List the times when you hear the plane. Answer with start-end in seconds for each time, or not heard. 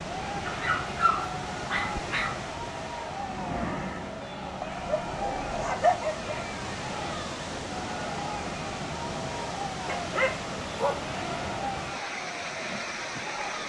3.0-5.8.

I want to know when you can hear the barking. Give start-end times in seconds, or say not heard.
0.5-2.5, 4.7-6.5, 9.8-11.1.